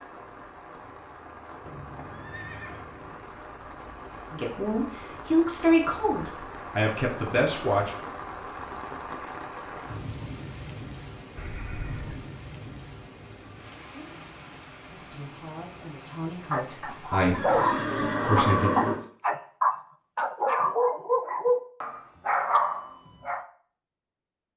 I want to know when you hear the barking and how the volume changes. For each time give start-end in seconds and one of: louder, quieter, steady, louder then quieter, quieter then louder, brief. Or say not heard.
16.5-23.4 steady.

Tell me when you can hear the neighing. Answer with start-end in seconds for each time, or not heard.
1.6-3.2, 11.3-12.2, 17.3-19.0.